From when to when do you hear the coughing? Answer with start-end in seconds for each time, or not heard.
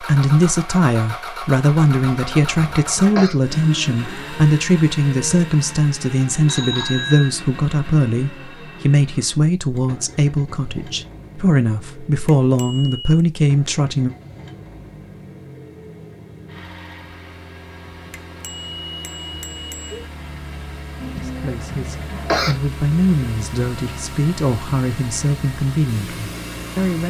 2.1-3.4, 21.0-22.6.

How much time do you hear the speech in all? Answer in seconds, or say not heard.
20 s.